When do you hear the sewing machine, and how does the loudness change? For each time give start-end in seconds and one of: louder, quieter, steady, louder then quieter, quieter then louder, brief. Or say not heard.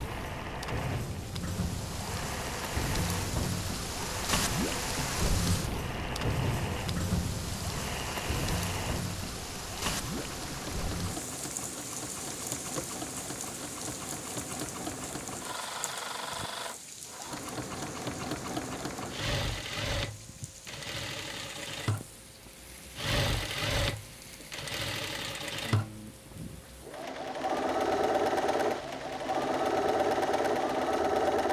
0.0-31.4 louder.